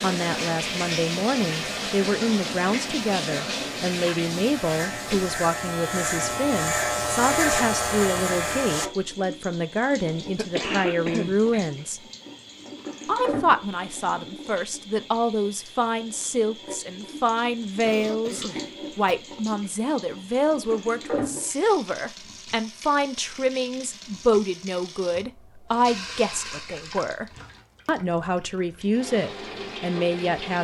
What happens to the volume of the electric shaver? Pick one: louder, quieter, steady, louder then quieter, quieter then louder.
louder.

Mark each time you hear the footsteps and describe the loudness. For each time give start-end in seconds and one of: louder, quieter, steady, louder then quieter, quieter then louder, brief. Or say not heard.
not heard.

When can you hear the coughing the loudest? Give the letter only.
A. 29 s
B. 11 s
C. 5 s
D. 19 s
B.